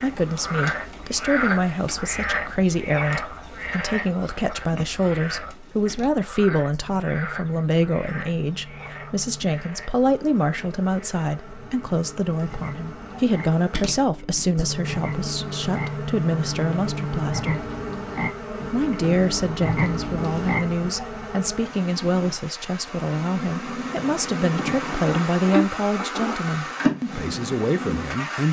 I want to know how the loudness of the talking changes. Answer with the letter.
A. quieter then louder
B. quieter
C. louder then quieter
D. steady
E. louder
D.